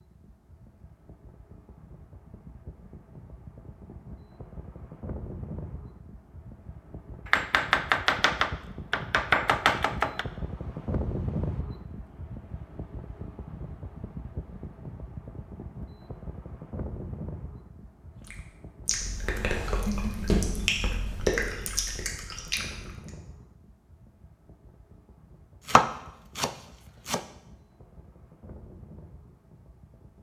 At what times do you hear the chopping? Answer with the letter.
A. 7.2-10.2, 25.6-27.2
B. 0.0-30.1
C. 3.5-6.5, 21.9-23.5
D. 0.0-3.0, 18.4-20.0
A.